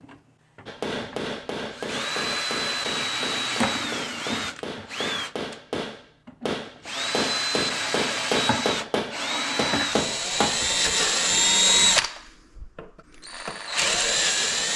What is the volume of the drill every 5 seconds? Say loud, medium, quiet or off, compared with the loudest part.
medium, medium, loud.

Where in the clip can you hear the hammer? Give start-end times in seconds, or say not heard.
0.7-10.7.